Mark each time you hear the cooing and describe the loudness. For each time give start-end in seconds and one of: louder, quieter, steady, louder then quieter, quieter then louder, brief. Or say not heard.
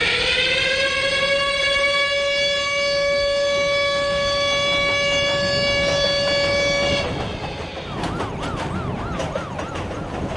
not heard.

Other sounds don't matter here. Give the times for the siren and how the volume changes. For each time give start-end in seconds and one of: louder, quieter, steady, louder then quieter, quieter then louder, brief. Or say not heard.
0.0-10.1 quieter.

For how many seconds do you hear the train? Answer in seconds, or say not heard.
10 s.